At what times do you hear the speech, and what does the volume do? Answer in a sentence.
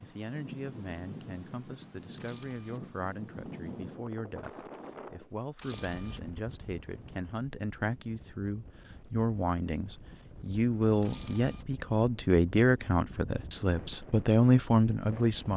The speech can be heard from 0.0 to 15.5 s, getting louder.